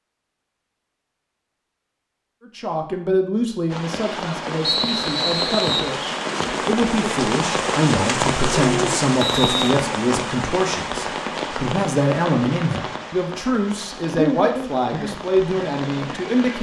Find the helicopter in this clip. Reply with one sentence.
You can't hear the helicopter here.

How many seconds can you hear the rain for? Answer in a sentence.
You can hear the rain for 13 seconds altogether.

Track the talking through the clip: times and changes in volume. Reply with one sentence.
You can hear the talking from 2.5 to 16.5 s, at a steady volume.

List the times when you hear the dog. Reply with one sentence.
The dog can't be heard in this clip.